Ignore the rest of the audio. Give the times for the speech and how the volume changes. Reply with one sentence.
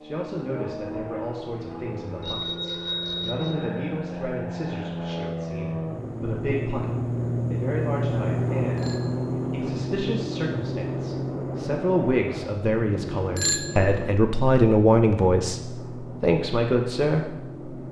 The speech can be heard from 0.0 to 17.6 s, getting louder.